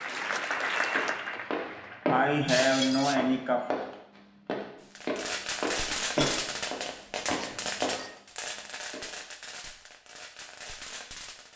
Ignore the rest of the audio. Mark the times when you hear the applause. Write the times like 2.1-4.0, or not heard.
0.0-2.1.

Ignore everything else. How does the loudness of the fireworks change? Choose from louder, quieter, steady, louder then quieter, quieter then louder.
quieter.